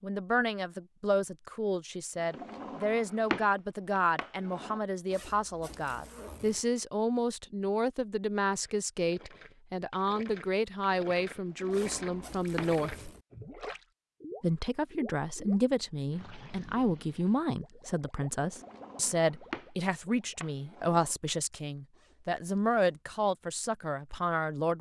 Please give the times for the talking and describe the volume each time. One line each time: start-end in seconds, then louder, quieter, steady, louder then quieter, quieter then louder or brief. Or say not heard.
0.0-12.9 steady
14.4-24.7 steady.